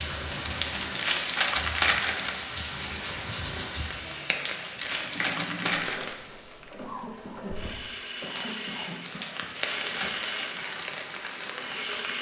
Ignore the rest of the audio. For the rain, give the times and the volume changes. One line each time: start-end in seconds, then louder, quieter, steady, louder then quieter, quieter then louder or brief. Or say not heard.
0.0-12.1 quieter then louder.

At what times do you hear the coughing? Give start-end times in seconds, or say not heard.
6.8-9.3.